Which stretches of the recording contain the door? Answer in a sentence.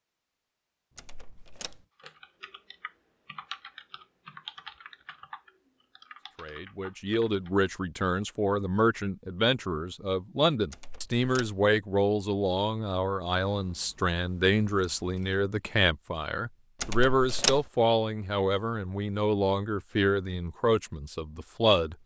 The door can be heard from 0.9 to 1.9 s, from 10.7 to 11.6 s and from 16.8 to 17.6 s.